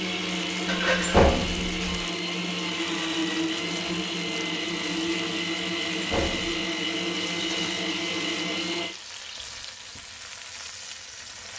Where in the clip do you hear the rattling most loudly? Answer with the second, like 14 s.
1 s.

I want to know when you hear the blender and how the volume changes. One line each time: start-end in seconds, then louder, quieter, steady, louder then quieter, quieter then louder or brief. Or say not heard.
0.0-8.9 steady.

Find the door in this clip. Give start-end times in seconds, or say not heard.
1.0-2.0, 6.0-6.6.